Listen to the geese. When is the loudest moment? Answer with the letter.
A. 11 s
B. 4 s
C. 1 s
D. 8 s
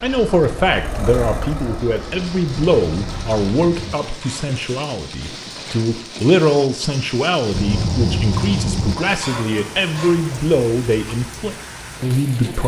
D.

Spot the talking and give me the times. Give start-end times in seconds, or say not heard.
0.0-12.6.